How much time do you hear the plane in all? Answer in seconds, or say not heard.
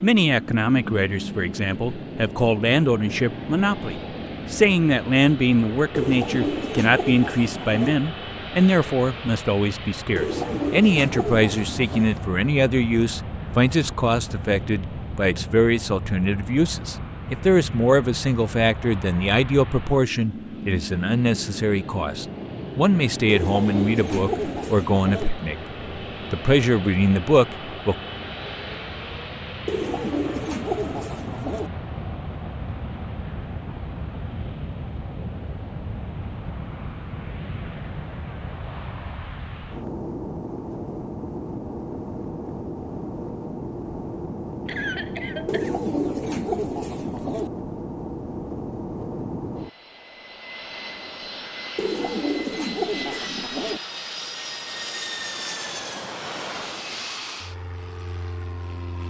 59 s.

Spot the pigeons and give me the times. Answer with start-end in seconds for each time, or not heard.
6.0-8.0, 10.2-12.1, 23.2-25.3, 29.6-31.7, 45.5-47.5, 51.8-53.8.